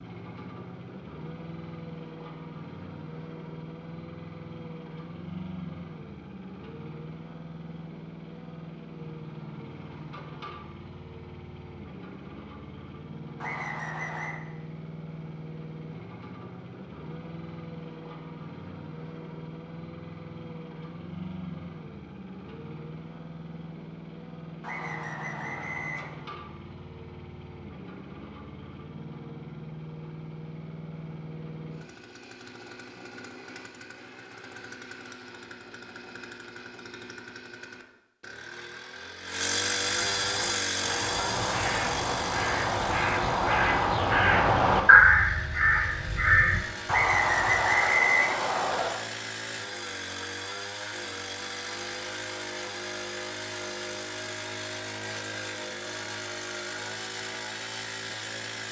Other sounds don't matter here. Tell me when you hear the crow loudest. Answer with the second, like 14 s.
45 s.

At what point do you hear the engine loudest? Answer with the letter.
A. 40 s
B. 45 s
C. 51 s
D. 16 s
A.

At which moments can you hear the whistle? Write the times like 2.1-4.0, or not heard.
13.4-14.4, 24.6-26.1, 46.9-48.9.